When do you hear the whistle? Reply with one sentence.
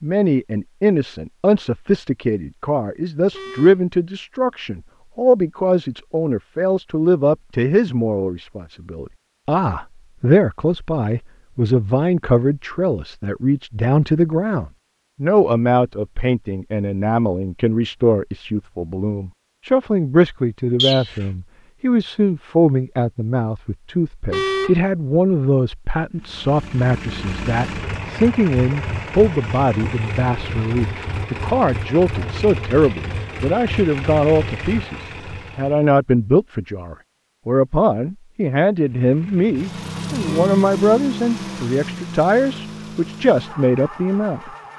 You can hear the whistle from 20.8 to 21.2 s.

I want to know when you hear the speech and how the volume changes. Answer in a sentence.
The speech can be heard from 0.0 to 44.5 s, at a steady volume.